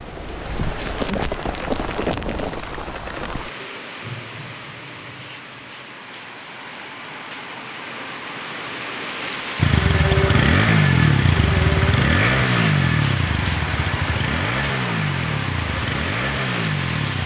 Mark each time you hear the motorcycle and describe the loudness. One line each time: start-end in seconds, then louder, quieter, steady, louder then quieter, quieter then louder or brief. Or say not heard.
9.6-17.2 quieter.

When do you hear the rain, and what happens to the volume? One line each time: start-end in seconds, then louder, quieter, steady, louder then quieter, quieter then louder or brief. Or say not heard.
0.0-17.2 quieter then louder.